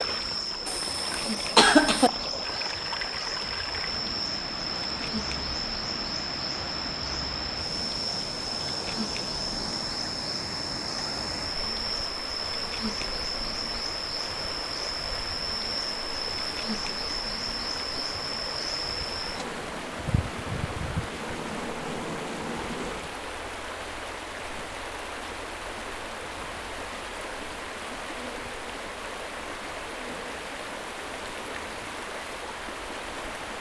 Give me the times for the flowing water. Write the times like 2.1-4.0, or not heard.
0.0-33.5.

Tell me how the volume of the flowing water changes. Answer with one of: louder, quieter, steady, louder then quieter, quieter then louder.
steady.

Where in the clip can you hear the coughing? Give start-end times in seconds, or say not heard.
0.7-2.1.